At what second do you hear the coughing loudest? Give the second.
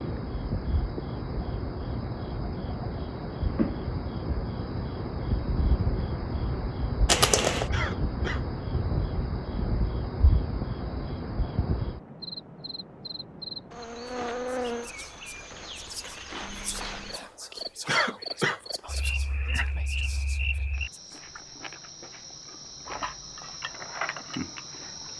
18 s.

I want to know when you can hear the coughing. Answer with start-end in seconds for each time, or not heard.
7.7-8.4, 17.9-18.6.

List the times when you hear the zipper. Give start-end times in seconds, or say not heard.
7.0-7.7.